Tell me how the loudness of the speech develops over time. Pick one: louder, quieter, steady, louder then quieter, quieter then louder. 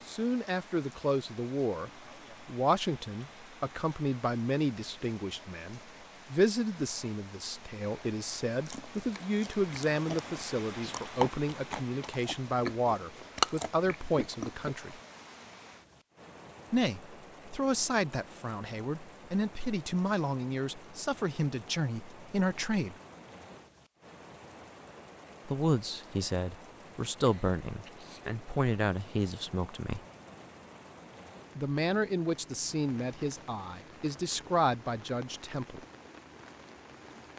steady.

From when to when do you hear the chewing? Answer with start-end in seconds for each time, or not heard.
8.7-14.8.